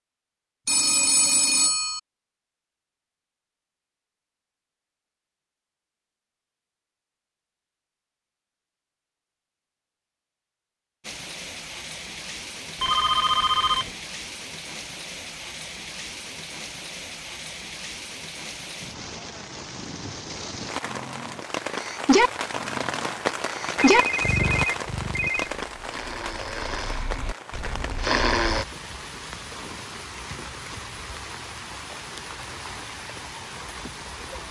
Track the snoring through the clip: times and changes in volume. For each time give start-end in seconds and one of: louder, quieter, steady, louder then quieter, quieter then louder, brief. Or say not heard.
20.9-28.6 quieter then louder.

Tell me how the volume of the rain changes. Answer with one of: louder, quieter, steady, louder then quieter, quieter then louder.
louder then quieter.